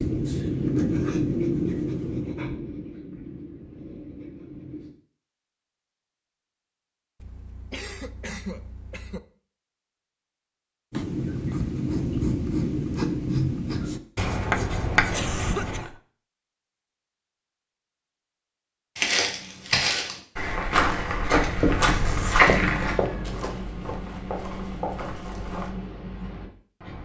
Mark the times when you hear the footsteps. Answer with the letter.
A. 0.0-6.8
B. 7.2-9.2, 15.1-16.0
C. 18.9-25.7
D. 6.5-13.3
C.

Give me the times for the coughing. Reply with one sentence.
You can hear the coughing from 7.2 to 9.2 s and from 15.1 to 16.0 s.